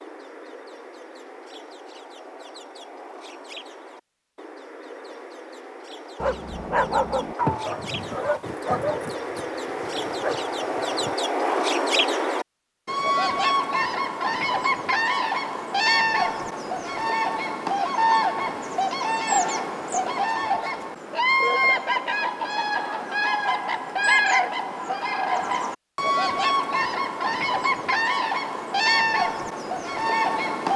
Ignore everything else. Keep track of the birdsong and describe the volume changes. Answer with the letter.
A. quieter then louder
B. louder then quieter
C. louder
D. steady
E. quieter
C.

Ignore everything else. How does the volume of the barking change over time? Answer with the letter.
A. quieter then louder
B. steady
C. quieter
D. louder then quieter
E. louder
C.